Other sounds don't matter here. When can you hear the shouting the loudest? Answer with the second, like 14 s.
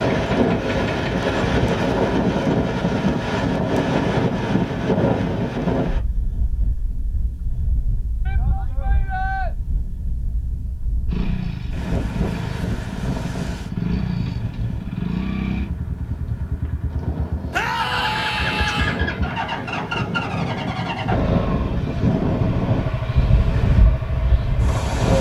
18 s.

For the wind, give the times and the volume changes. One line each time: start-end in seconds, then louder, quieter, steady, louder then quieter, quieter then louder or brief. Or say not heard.
0.0-25.1 quieter then louder.